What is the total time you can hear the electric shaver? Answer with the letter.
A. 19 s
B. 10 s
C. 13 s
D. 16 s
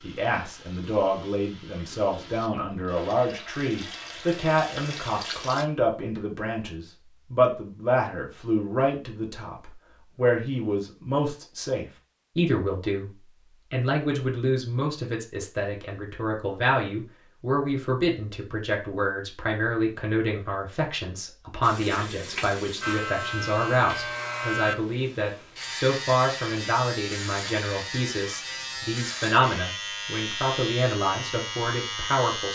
B.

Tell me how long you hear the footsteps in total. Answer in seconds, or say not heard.
not heard.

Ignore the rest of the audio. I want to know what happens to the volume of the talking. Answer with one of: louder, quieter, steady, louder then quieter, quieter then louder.
steady.